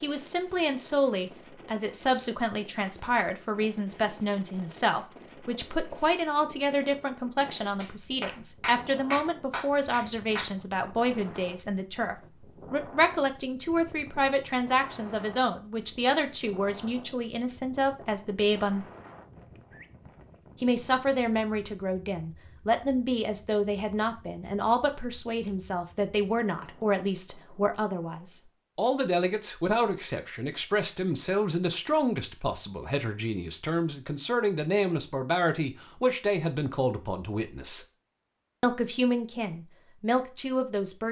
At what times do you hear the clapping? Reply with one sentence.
You can hear the clapping from 7.8 to 10.5 s.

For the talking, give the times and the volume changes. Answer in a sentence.
You can hear the talking from 0.0 to 18.9 s, at a steady volume; from 20.6 to 37.9 s, at a steady volume; and briefly from 38.6 to 41.0 s.